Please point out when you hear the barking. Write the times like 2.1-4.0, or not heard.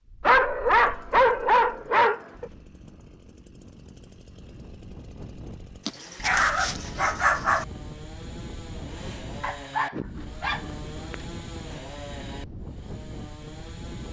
0.2-2.5, 5.8-7.7, 9.4-11.2.